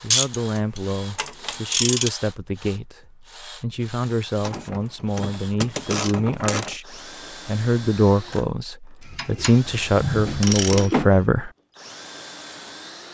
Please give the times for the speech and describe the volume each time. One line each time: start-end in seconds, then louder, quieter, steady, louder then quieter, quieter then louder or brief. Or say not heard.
0.0-11.5 louder.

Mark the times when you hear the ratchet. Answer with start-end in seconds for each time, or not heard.
0.1-2.1, 4.4-6.8, 9.0-11.2.